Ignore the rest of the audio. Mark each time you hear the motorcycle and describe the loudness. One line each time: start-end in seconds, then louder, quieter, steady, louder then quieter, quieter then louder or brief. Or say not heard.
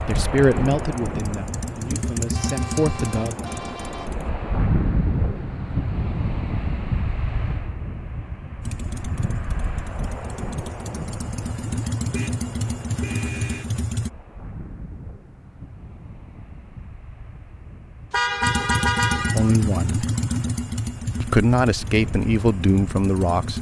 0.1-4.3 louder then quieter
8.6-14.1 louder
18.4-23.5 quieter.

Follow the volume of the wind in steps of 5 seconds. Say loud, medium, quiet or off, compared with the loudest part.
loud, loud, medium, quiet, medium.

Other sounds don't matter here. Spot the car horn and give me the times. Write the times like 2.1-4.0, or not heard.
2.4-4.1, 12.1-13.8, 18.1-19.6.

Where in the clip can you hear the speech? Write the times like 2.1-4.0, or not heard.
0.1-3.4, 19.1-20.1, 21.2-23.5.